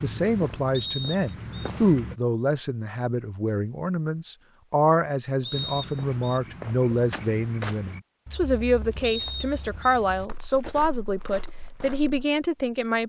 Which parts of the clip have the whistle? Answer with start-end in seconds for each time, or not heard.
0.7-1.7, 5.4-6.4, 9.0-10.0.